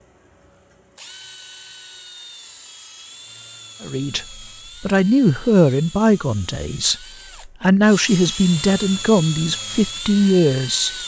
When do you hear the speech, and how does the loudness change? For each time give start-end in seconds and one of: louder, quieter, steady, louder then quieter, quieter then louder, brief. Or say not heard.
3.8-10.9 steady.